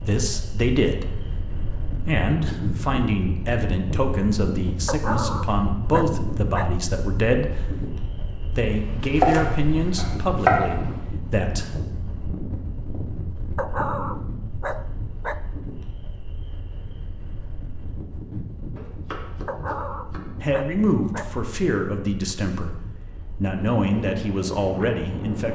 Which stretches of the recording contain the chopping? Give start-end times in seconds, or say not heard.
8.7-10.7, 18.8-20.2.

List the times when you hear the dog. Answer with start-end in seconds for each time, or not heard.
4.8-6.8, 13.6-15.4, 19.4-21.4.